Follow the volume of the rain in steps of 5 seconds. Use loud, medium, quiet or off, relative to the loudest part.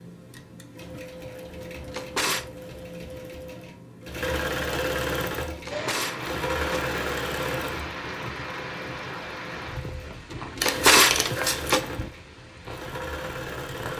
off, loud, medium.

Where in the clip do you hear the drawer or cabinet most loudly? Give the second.
11 s.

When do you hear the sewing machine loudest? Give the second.
5 s.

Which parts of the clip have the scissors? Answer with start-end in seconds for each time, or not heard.
10.6-11.8.